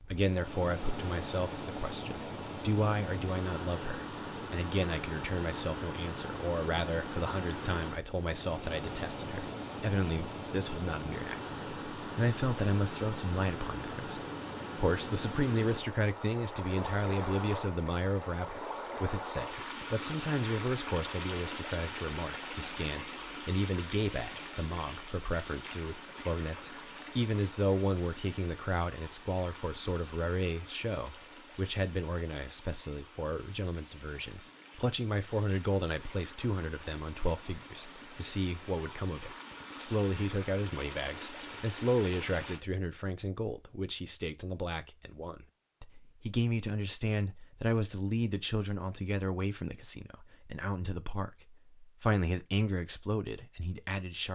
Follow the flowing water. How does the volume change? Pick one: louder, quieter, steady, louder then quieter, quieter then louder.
quieter.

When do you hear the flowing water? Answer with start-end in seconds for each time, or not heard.
0.0-42.6.